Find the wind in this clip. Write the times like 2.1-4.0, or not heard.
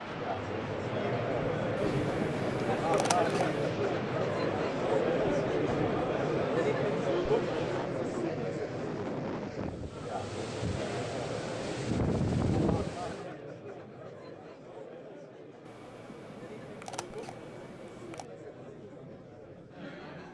0.0-13.2.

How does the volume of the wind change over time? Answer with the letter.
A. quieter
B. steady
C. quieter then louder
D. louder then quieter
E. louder
E.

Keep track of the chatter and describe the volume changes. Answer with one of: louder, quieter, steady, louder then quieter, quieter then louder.
quieter.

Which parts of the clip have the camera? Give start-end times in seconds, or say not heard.
1.8-3.6, 15.7-18.2.